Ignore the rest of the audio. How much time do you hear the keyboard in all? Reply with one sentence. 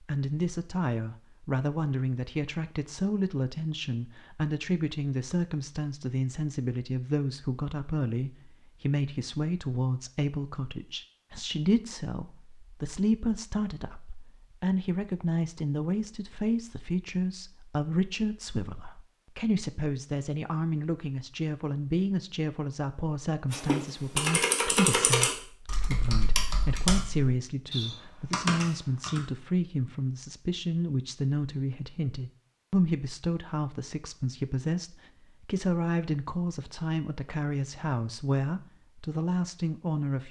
The keyboard can be heard for 6 seconds in total.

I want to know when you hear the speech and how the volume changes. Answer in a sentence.
The speech can be heard from 0.0 to 40.2 s, at a steady volume.